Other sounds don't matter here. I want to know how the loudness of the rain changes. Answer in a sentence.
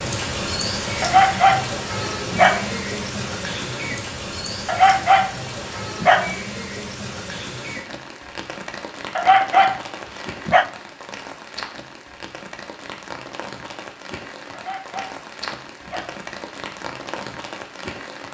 The volume of the rain goes down.